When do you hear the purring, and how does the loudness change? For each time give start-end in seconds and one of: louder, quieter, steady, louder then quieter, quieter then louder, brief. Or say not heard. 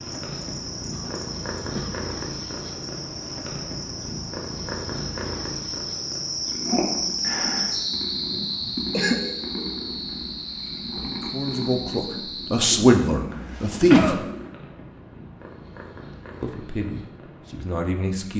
0.0-18.3 quieter.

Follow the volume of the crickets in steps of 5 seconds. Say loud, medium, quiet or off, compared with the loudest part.
medium, loud, medium, off.